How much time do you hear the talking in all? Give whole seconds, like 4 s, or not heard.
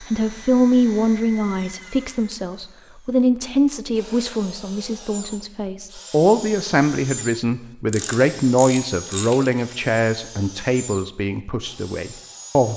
13 s.